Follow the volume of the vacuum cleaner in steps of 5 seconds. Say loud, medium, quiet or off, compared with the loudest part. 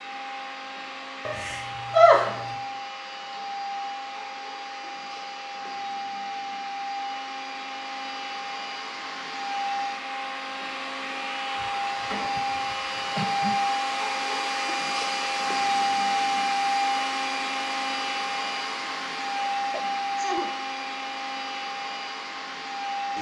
medium, medium, loud, loud, medium.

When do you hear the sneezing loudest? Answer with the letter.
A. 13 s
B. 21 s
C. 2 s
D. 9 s
C.